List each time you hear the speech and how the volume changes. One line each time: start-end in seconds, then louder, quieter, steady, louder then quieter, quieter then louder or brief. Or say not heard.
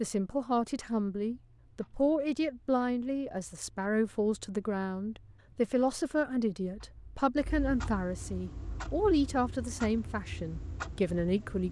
0.0-11.6 steady.